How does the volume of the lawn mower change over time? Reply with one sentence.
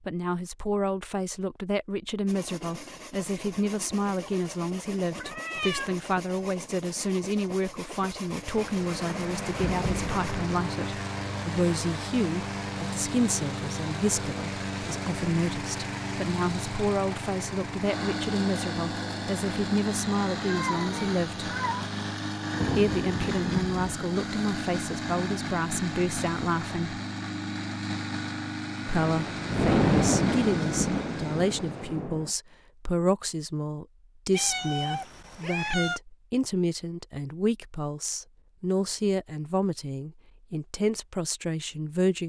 The loudness of the lawn mower stays about the same.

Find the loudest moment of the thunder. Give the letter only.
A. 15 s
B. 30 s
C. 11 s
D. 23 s
B.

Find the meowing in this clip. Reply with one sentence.
The meowing can be heard from 5.2 to 6.0 s, from 20.4 to 21.9 s and from 34.3 to 36.0 s.